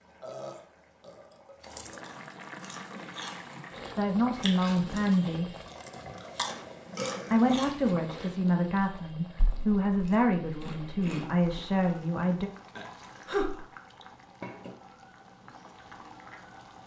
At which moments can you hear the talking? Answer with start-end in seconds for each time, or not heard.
4.0-5.5, 7.3-12.5.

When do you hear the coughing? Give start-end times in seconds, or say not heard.
not heard.